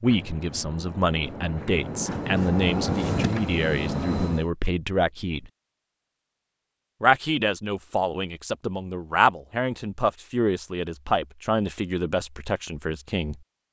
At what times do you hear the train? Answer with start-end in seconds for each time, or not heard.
0.0-4.5.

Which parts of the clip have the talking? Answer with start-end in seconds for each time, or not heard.
0.0-5.5, 7.0-13.4.